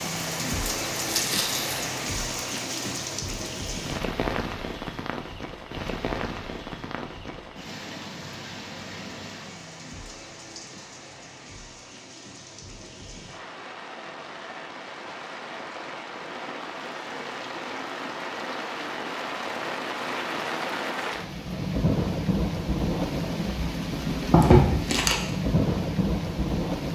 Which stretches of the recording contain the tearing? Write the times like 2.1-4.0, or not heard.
0.9-1.9, 24.3-25.2.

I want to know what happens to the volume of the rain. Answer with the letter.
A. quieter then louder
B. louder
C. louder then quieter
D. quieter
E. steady
A.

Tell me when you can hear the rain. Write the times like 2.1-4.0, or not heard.
0.0-26.9.